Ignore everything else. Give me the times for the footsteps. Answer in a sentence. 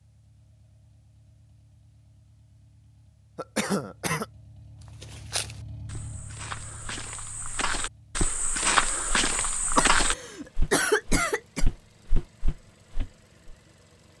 You can hear the footsteps from 5.0 to 13.6 s.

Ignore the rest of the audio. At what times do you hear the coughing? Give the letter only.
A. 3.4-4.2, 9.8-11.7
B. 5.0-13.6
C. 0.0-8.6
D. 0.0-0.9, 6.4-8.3
A.